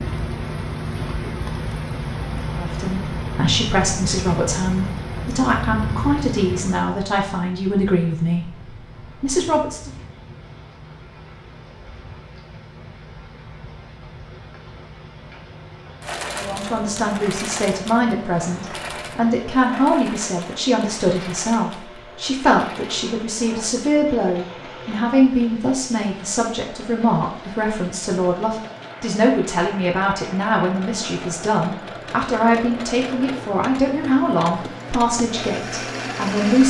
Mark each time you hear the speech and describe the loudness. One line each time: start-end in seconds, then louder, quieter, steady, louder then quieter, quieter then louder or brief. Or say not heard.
2.5-9.9 steady
16.4-36.6 steady.